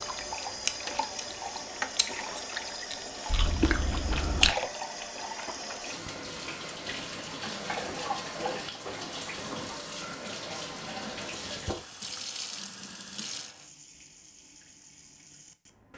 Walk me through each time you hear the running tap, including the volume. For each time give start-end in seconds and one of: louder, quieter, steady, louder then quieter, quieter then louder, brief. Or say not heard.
0.0-15.9 quieter.